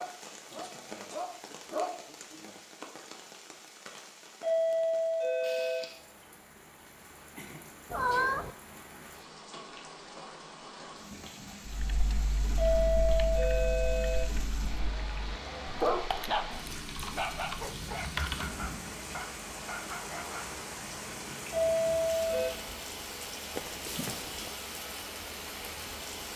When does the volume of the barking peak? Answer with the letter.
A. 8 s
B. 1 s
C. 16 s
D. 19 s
C.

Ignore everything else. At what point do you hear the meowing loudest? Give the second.
8 s.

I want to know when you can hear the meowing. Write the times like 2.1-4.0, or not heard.
7.9-8.6, 23.6-24.6.